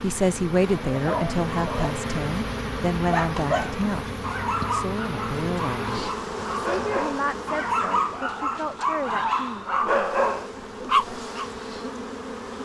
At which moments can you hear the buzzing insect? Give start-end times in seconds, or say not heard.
0.0-12.6.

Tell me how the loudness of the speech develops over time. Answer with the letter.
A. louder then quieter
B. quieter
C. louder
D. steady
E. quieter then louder
B.